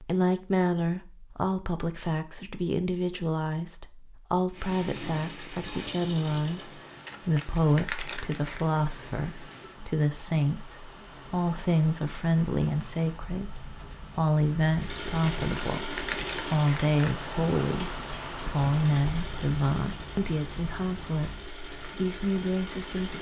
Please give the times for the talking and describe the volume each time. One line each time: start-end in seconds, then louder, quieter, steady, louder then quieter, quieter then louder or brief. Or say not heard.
0.0-23.1 steady.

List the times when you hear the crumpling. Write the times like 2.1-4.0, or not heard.
7.0-8.7, 15.2-17.2.